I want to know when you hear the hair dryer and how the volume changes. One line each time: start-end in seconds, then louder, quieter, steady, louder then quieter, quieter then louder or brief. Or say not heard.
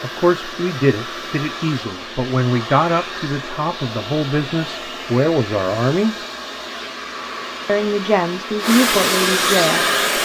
0.0-10.2 louder.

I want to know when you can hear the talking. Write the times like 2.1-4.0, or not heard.
0.0-6.2, 7.7-10.2.